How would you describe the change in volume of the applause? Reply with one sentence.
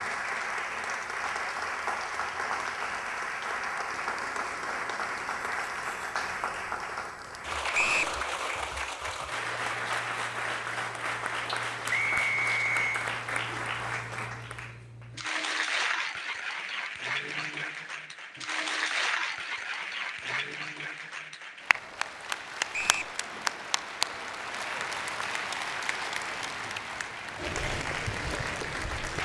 The loudness of the applause stays about the same.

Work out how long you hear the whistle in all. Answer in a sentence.
The whistle can be heard for 2 seconds in total.